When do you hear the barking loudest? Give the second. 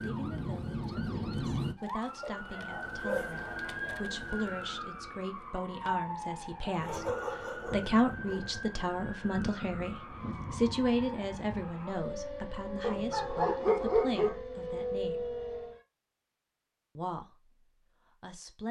14 s.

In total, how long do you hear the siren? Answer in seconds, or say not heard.
16 s.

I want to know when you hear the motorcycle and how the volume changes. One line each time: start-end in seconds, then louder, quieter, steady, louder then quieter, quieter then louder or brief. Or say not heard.
not heard.